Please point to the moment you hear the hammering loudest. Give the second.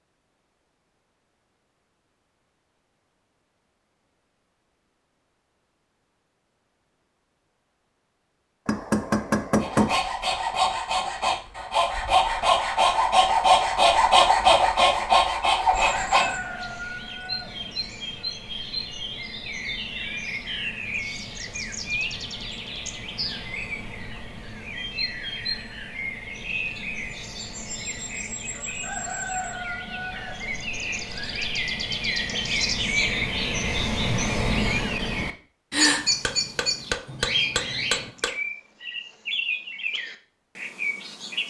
10 s.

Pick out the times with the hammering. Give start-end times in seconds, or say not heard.
8.7-10.0, 36.2-38.4.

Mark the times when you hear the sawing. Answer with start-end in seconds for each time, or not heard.
9.6-16.4.